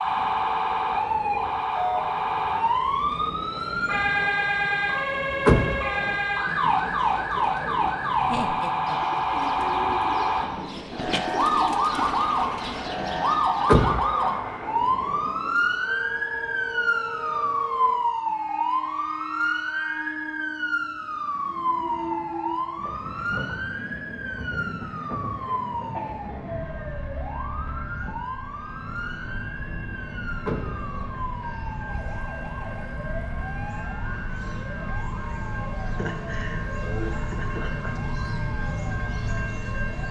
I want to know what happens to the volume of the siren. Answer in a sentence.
The volume of the siren goes down.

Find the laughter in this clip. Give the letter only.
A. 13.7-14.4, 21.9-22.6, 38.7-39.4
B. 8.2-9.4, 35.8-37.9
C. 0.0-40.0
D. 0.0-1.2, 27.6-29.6
B.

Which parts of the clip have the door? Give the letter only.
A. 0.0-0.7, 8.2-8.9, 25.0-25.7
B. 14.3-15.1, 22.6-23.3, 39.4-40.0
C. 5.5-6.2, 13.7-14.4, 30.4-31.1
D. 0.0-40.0
C.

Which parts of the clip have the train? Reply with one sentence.
You can hear the train from 0.0 to 40.0 s.